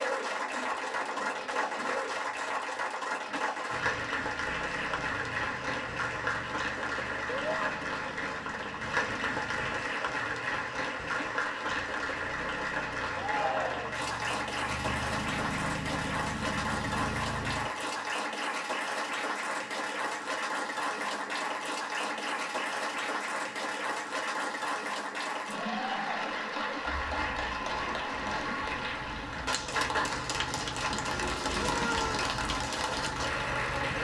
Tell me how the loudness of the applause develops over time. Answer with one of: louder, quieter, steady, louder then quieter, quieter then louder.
steady.